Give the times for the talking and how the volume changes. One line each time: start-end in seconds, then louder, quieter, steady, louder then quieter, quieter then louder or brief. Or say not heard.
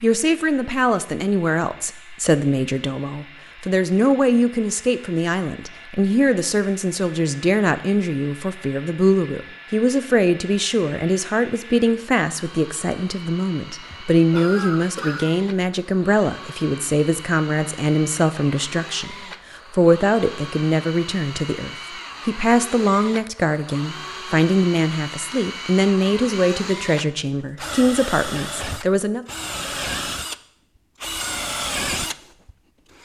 0.0-29.2 steady.